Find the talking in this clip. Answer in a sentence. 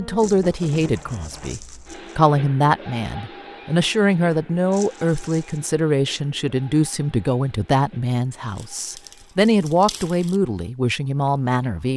The talking can be heard from 0.0 to 11.9 s.